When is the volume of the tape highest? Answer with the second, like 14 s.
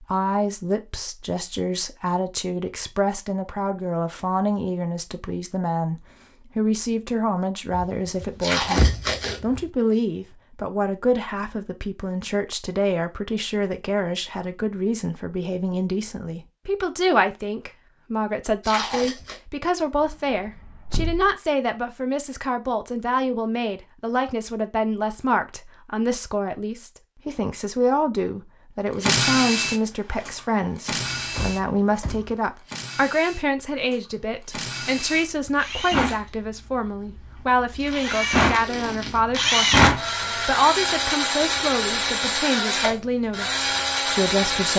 9 s.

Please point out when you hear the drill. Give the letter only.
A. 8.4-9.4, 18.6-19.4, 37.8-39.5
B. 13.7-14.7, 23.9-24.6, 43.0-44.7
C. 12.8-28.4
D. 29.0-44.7
D.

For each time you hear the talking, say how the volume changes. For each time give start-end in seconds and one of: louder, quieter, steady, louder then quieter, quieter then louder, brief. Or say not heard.
0.0-44.7 steady.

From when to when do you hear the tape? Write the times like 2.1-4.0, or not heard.
8.4-9.4, 18.6-19.4, 37.8-39.5.